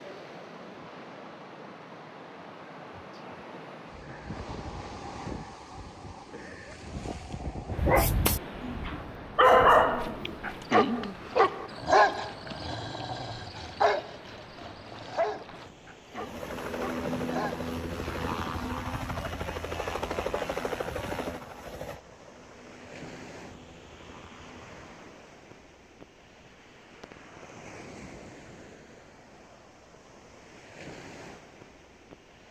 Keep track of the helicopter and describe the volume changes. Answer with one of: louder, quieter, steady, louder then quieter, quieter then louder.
quieter.